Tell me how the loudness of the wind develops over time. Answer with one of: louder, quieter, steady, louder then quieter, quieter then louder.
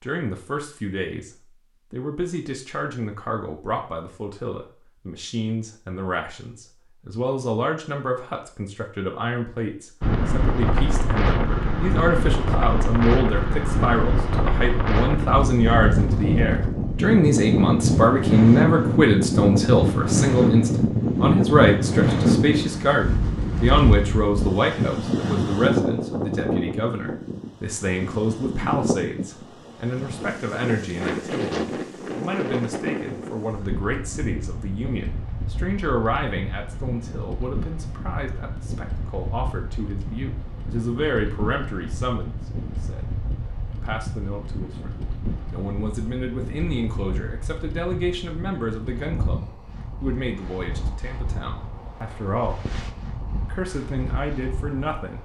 quieter.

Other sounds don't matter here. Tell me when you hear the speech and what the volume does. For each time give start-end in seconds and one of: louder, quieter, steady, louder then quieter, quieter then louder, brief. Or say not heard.
0.0-1.3 brief
1.9-55.1 louder then quieter.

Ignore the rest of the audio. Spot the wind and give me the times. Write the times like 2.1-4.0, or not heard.
10.0-55.1.